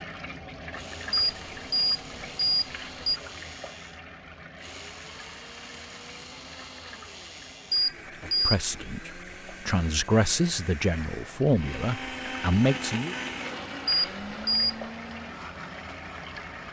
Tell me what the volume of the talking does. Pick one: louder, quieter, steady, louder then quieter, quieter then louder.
louder.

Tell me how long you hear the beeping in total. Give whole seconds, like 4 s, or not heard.
4 s.